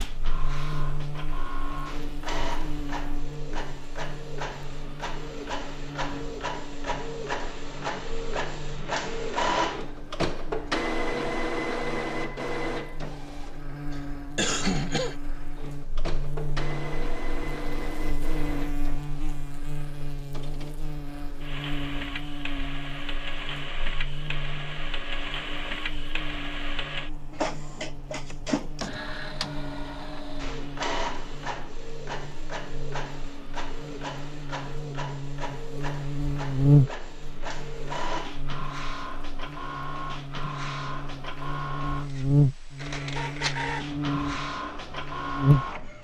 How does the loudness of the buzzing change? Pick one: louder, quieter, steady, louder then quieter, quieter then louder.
louder.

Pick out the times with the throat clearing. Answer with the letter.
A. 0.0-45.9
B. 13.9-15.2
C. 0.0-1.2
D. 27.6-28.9
B.